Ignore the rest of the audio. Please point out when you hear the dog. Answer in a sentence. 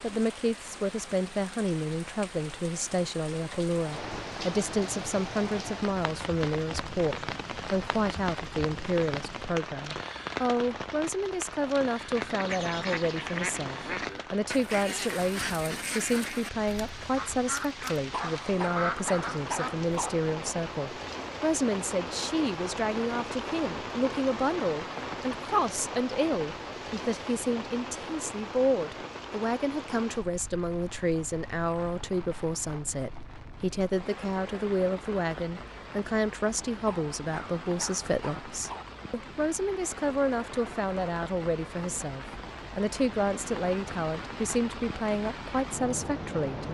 The dog can be heard from 18.1 to 20.1 s and from 36.9 to 38.9 s.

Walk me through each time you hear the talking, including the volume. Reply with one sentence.
You can hear the talking from 0.0 to 46.7 s, at a steady volume.